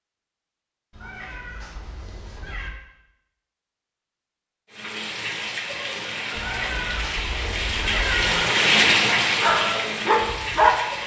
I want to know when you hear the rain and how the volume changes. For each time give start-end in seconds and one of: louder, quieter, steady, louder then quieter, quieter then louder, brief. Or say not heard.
4.7-11.0 louder then quieter.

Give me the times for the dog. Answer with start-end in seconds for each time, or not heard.
9.2-11.0.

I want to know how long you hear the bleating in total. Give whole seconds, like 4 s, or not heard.
not heard.